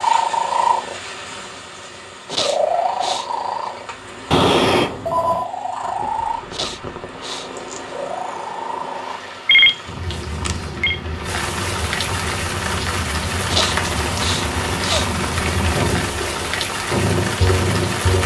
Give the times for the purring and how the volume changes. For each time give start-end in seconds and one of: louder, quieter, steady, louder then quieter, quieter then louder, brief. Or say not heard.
0.0-18.2 quieter then louder.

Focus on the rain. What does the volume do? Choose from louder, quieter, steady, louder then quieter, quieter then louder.
louder.